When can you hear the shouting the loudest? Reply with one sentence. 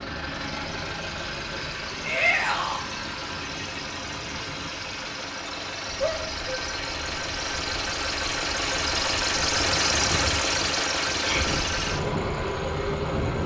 The volume of the shouting peaks at 2 seconds.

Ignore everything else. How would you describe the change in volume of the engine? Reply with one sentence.
The volume of the engine goes up.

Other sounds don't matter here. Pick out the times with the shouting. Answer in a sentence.
The shouting can be heard from 2.0 to 2.8 s, from 6.0 to 6.6 s and from 11.2 to 11.6 s.